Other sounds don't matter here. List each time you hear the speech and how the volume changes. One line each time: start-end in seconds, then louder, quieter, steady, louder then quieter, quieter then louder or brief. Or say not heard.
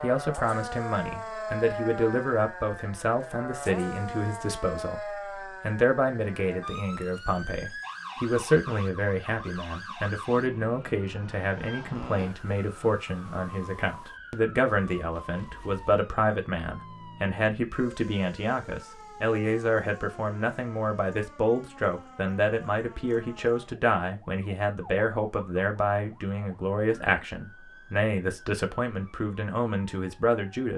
0.0-30.7 steady.